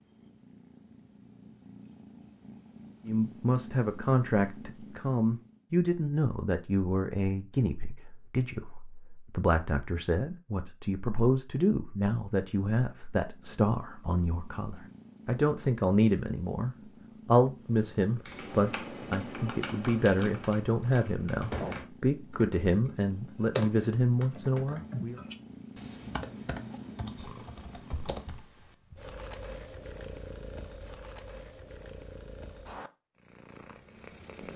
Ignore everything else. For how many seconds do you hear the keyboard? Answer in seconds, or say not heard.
10 s.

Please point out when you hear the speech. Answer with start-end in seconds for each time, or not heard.
3.0-25.2.